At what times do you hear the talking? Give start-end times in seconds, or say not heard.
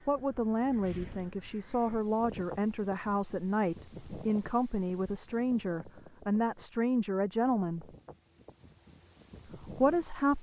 0.1-7.9, 9.4-10.3.